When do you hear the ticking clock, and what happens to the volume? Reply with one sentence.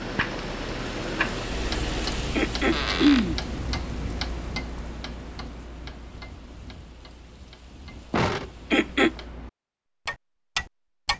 You can hear the ticking clock from 0.0 to 11.1 s, getting quieter then louder.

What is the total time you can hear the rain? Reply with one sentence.
The rain can be heard for 9 seconds in total.